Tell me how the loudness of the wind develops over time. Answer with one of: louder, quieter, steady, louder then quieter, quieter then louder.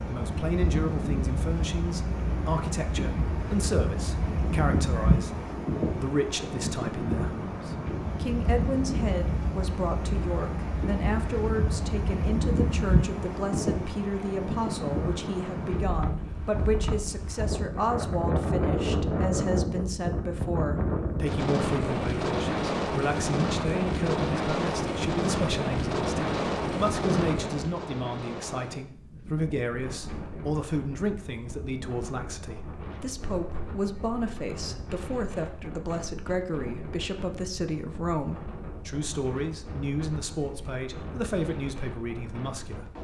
quieter.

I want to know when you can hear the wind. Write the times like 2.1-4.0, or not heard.
0.0-42.9.